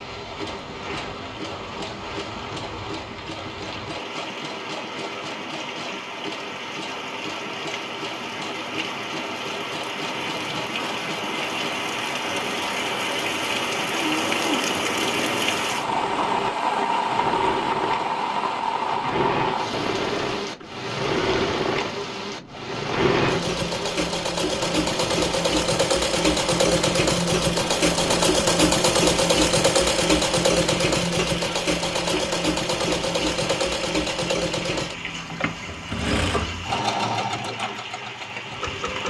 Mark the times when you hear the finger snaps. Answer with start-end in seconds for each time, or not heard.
not heard.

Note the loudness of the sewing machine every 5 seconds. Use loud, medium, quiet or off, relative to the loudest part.
quiet, quiet, quiet, medium, medium, loud, loud, medium.